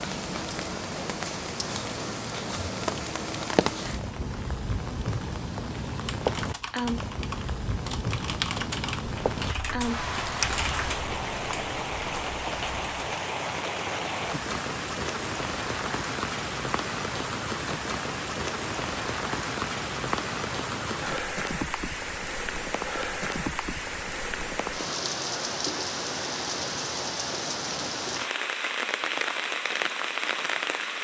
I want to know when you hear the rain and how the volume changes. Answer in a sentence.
The rain can be heard from 0.0 to 30.9 s, at a steady volume.